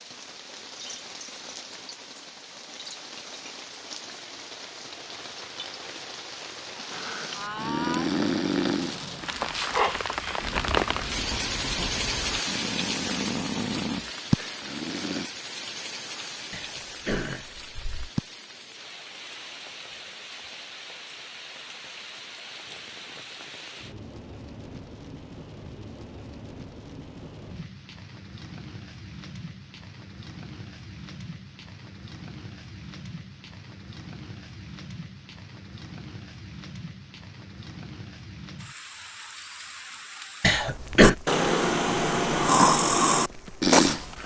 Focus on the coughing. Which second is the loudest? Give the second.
41 s.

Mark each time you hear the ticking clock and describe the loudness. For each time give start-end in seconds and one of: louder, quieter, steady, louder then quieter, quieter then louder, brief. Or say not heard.
not heard.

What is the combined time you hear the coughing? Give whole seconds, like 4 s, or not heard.
2 s.